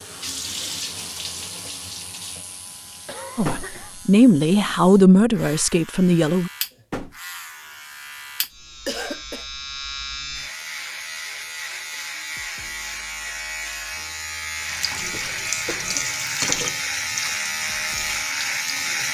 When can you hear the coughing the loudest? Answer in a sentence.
The loudest moment of the coughing is at 9 seconds.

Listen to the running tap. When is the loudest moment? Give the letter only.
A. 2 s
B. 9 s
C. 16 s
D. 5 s
C.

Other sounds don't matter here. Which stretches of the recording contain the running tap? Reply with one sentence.
You can hear the running tap from 0.0 to 4.2 s and from 14.6 to 19.0 s.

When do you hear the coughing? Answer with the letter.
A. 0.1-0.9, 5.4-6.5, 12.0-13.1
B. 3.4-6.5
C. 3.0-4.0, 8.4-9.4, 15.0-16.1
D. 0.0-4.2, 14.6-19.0
C.